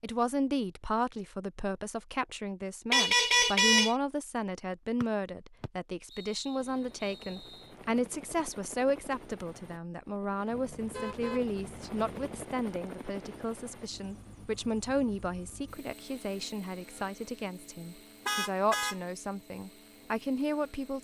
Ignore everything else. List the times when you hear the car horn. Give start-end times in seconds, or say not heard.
2.9-4.0, 10.5-12.4, 18.2-18.9.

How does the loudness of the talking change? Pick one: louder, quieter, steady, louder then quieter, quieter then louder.
steady.